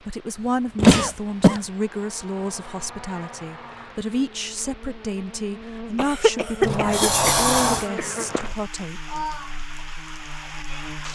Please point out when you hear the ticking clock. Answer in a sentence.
The ticking clock can't be heard in this clip.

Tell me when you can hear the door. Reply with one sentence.
You can hear the door from 0.8 to 1.6 s and from 6.6 to 7.9 s.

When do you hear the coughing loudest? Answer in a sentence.
The loudest moment of the coughing is at 1 second.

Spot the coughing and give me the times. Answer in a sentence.
The coughing can be heard from 0.8 to 1.6 s and from 6.0 to 8.2 s.